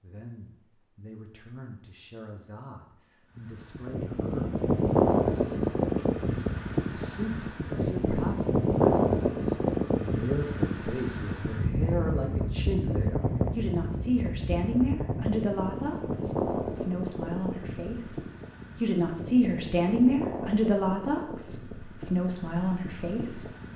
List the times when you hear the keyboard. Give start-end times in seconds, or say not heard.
not heard.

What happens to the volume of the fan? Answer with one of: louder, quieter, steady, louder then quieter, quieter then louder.
quieter.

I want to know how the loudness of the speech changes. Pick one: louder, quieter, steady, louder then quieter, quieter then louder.
louder.